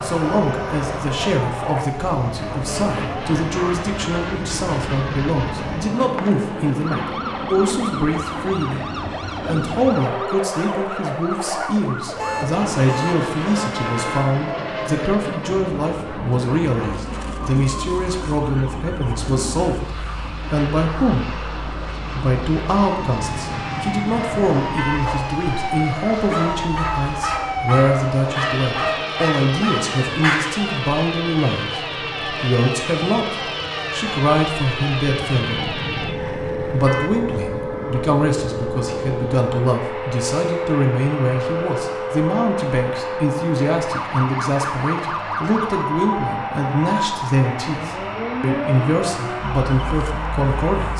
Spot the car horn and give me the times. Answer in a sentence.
The car horn can be heard from 12.2 to 14.3 s, from 23.1 to 25.0 s and from 35.0 to 37.1 s.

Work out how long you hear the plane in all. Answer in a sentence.
You can hear the plane for 51 seconds altogether.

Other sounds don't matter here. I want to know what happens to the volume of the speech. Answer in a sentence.
The loudness of the speech stays about the same.